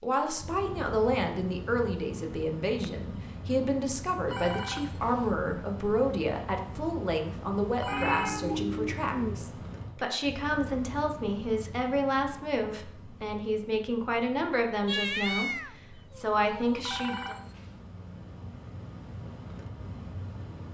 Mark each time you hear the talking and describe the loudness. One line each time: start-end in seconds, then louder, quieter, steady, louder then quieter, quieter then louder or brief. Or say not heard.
0.0-17.4 steady.